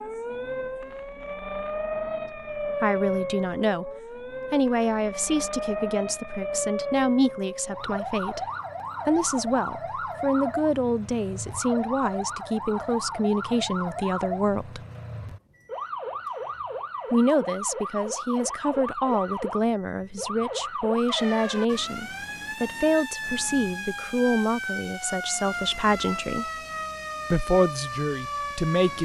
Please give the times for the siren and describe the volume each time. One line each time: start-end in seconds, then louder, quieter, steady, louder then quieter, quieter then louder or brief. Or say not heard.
0.0-29.0 steady.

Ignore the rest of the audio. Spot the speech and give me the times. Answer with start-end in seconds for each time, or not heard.
2.8-3.9, 4.5-8.4, 9.1-14.8, 17.1-26.4, 27.3-29.0.